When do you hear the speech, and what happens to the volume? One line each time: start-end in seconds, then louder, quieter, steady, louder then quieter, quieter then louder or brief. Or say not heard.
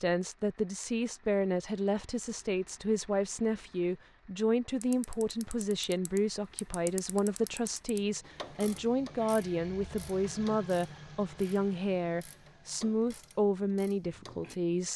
0.0-14.9 steady.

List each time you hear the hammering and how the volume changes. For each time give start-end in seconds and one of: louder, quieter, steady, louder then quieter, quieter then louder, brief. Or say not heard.
not heard.